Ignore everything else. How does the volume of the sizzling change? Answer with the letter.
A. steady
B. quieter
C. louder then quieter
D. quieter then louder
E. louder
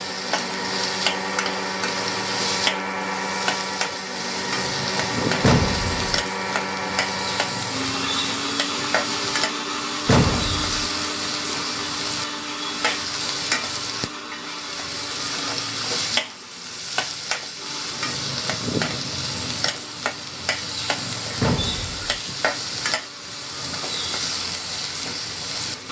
A.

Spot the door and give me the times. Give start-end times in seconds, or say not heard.
5.4-6.0, 10.1-10.8, 21.4-22.1.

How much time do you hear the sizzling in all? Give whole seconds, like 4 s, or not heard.
26 s.